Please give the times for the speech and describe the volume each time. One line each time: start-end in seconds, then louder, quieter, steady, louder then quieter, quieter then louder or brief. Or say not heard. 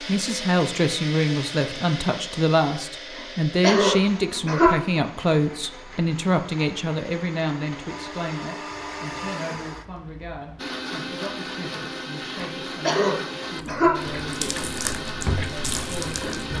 0.0-16.5 quieter.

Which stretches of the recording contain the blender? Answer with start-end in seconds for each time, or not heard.
0.0-16.5.